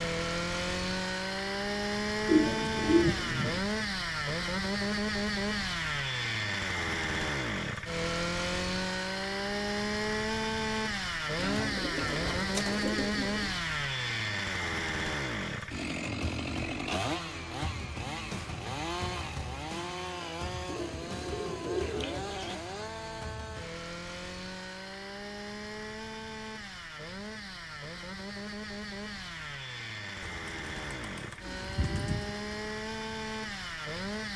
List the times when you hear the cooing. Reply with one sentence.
The cooing can be heard from 2.2 to 3.6 s, from 11.3 to 13.6 s, from 20.6 to 22.6 s and from 30.2 to 32.7 s.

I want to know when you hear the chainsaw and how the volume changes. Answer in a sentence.
The chainsaw can be heard from 0.0 to 34.3 s, getting quieter.